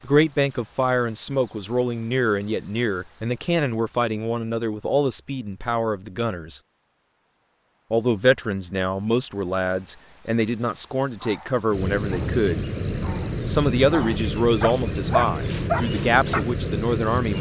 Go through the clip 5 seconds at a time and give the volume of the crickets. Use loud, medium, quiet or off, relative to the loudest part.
loud, medium, loud, loud.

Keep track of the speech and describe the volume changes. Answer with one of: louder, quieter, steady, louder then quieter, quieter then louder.
steady.